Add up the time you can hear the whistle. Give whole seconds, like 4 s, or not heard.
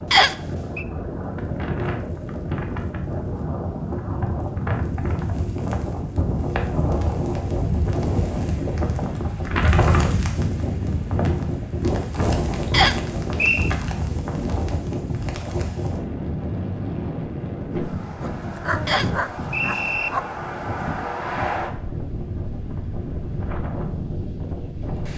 3 s.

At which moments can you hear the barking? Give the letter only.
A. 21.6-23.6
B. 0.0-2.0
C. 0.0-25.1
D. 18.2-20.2
D.